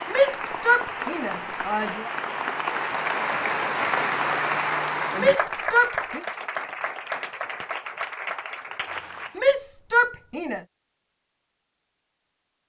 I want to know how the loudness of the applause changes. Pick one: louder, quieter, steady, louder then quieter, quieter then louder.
louder then quieter.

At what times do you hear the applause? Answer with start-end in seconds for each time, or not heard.
0.0-9.4.